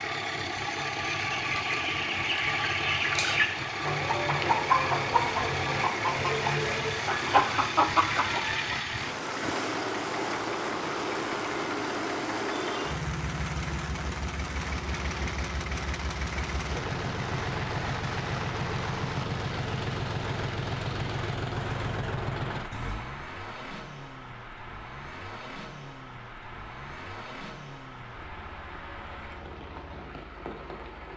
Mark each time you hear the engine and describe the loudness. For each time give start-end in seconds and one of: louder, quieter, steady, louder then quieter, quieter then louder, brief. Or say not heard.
0.0-31.1 quieter.